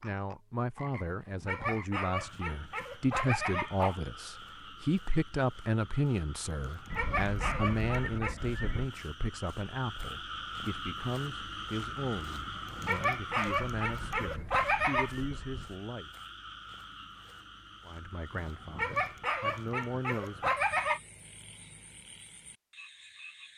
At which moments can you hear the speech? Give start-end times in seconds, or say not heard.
0.0-16.1, 17.9-20.6.